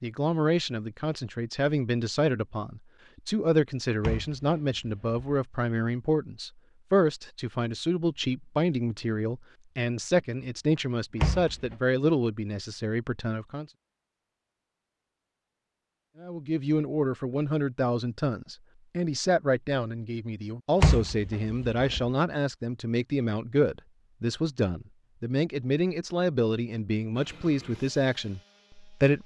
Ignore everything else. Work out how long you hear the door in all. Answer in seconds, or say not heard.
3 s.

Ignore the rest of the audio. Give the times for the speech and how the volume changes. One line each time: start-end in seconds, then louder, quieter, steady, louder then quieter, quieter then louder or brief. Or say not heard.
0.0-13.7 steady
16.2-29.2 steady.